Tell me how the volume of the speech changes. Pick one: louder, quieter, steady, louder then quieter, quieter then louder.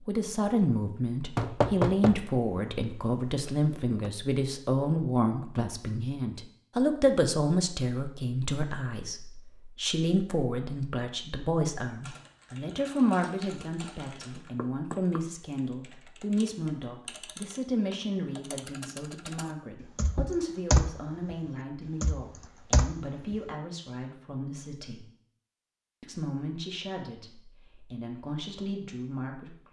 quieter.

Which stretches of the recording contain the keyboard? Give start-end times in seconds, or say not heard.
12.0-23.5.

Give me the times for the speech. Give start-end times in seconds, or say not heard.
0.1-25.1, 26.0-29.6.